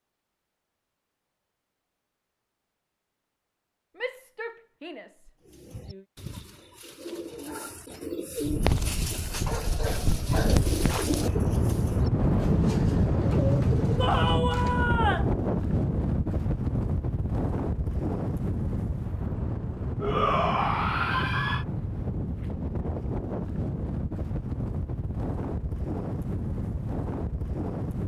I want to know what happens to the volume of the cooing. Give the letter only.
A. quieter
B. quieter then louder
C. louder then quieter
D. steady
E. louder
E.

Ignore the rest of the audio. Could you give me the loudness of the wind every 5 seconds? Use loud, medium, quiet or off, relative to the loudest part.
off, medium, loud, loud, medium, medium.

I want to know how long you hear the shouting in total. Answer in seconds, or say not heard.
5 s.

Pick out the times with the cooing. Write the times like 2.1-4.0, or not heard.
5.5-14.8.